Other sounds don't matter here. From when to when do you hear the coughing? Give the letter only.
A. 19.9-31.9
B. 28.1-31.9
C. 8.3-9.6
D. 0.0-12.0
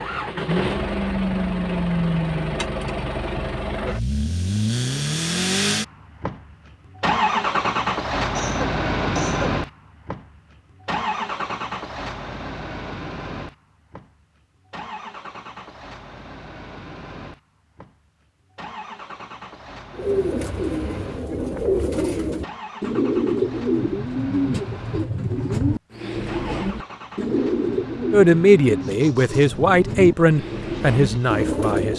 C.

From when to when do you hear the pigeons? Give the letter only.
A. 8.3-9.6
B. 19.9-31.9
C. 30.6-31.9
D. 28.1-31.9
B.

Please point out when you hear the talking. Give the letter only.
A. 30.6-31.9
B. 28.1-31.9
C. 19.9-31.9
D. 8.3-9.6
B.